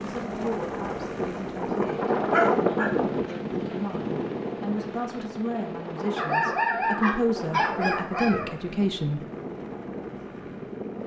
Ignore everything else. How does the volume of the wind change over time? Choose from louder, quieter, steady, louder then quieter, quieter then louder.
quieter.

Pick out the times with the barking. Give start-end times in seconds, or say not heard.
2.3-3.4, 6.2-8.6.